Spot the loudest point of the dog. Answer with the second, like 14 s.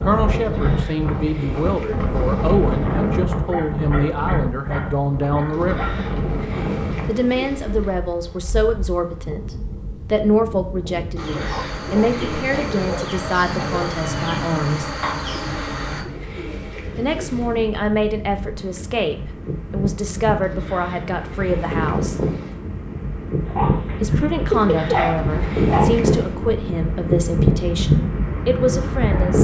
25 s.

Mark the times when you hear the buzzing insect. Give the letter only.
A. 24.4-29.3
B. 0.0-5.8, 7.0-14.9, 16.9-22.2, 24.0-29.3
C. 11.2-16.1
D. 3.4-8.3
C.